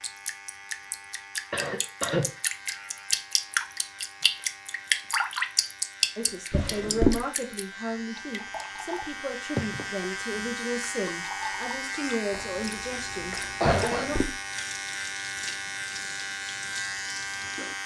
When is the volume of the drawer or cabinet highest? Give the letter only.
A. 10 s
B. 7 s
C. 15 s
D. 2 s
B.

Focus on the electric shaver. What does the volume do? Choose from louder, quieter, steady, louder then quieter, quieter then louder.
louder.